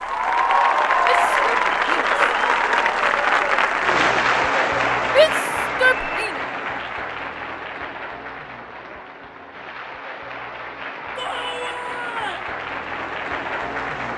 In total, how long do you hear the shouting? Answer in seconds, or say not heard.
4 s.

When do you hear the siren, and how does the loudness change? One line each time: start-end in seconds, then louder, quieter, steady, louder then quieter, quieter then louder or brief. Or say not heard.
not heard.